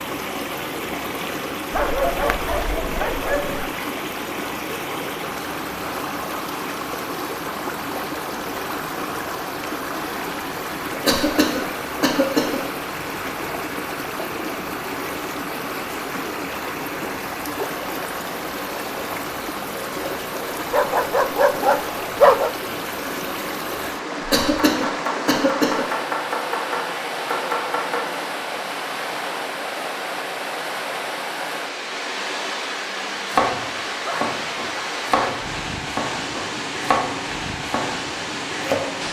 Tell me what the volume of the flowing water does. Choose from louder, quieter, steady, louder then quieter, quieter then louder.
steady.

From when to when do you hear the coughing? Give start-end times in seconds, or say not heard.
11.1-12.6, 24.3-25.9.